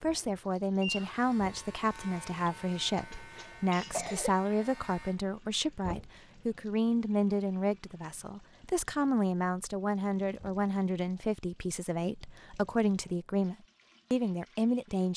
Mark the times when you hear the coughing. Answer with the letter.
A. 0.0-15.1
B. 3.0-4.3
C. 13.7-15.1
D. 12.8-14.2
B.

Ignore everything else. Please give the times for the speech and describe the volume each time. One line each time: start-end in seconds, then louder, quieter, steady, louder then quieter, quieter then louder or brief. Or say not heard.
0.0-15.1 steady.